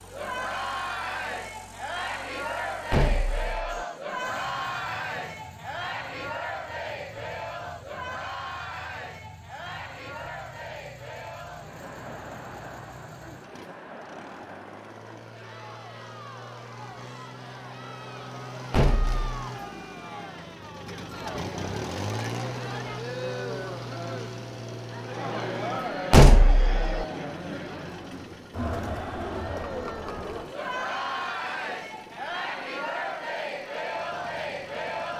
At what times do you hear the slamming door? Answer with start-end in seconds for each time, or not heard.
2.9-3.9, 18.7-19.2, 26.1-27.1.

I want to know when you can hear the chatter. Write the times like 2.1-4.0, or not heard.
0.0-35.1.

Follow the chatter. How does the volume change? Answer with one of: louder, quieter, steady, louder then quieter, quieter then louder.
quieter then louder.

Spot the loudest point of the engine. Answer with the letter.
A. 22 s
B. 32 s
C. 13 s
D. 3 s
A.